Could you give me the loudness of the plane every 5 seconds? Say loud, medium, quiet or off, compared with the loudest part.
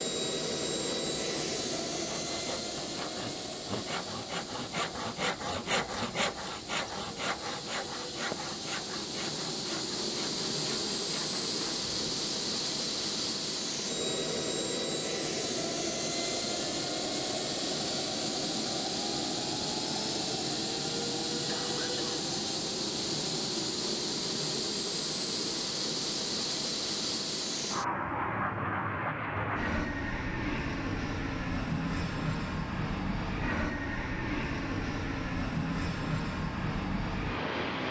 loud, medium, loud, loud, loud, loud, loud, loud.